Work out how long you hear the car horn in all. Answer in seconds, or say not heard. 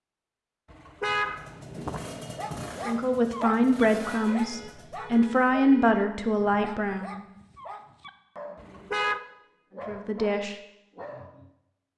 4 s.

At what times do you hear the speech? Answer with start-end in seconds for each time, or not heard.
2.9-7.2, 9.8-10.6.